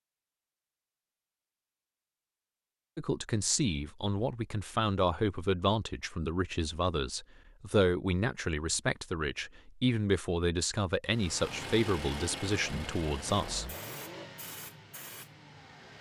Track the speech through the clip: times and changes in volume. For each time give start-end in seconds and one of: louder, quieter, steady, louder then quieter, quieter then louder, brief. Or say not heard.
3.0-13.7 steady.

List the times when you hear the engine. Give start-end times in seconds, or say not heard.
11.1-15.9.